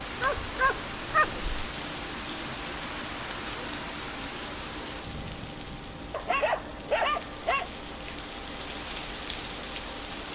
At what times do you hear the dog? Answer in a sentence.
You can hear the dog from 0.2 to 1.4 s and from 6.1 to 7.7 s.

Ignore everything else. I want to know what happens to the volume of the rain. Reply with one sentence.
The loudness of the rain goes down, then up.